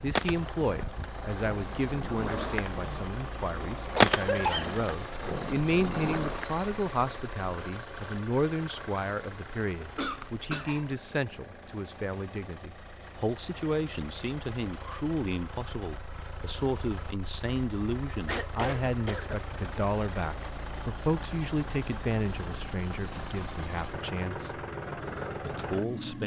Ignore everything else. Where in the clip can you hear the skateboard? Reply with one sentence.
You can hear the skateboard from 0.1 to 6.5 s.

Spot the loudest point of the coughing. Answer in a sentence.
The volume of the coughing peaks at 4 seconds.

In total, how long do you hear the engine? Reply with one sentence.
The engine can be heard for 26 seconds in total.